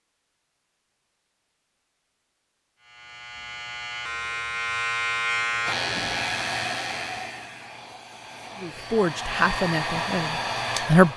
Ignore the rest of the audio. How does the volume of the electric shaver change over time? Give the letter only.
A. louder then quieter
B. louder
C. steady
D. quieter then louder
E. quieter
A.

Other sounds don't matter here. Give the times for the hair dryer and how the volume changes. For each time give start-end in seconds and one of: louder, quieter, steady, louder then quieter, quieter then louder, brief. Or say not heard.
5.7-11.1 quieter then louder.